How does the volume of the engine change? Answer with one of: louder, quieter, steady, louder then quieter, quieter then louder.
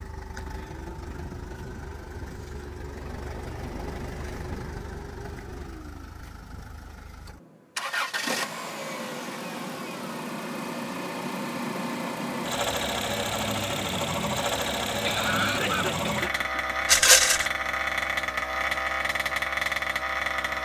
louder.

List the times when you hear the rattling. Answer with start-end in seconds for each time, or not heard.
16.9-17.5.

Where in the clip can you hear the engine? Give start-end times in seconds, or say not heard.
0.0-20.5.